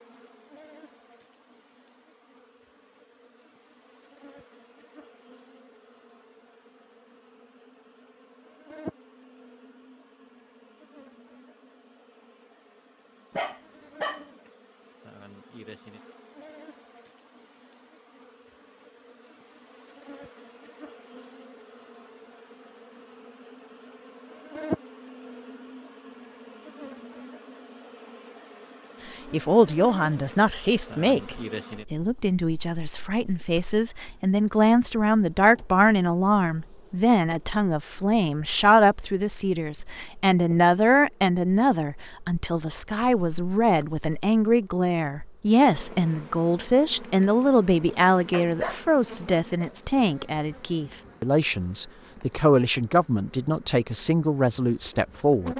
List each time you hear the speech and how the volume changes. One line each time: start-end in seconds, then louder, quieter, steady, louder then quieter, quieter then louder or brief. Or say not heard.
29.3-55.5 steady.